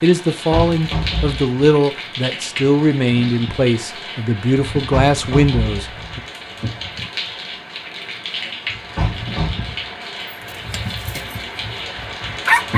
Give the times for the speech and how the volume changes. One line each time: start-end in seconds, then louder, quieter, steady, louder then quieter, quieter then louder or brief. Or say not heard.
0.0-6.2 steady.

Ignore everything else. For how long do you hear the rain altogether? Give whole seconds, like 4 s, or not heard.
13 s.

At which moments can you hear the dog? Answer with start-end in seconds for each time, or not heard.
10.2-12.7.